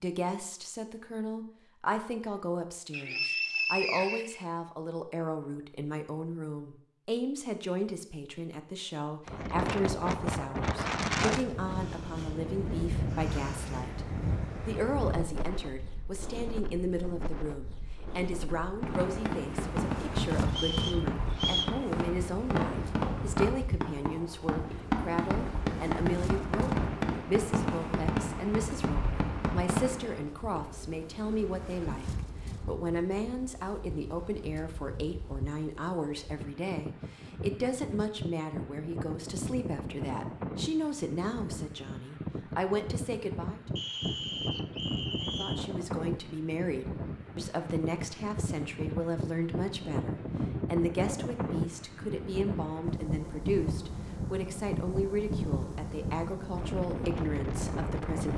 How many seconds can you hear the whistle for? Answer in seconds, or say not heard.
5 s.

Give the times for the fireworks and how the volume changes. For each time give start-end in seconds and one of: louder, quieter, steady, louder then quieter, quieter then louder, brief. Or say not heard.
18.8-30.3 steady.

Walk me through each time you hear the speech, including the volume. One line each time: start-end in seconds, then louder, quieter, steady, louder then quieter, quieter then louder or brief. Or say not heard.
0.0-43.8 steady
45.2-58.3 steady.